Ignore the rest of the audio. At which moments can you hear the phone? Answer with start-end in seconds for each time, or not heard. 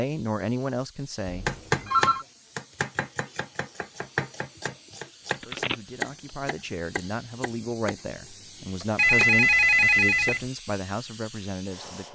1.2-2.2, 5.2-5.8, 8.9-10.4.